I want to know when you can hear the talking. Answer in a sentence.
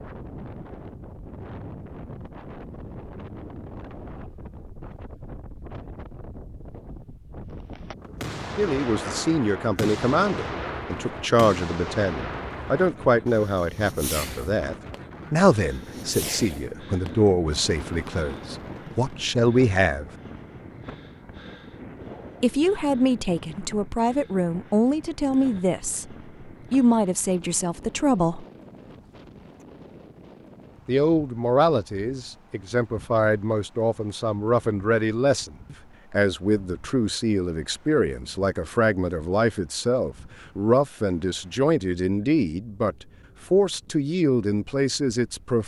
The talking can be heard from 8.6 to 20.1 s, from 22.4 to 28.4 s and from 30.9 to 45.6 s.